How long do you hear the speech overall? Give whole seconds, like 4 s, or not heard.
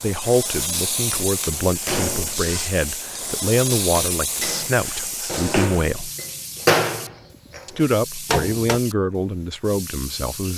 9 s.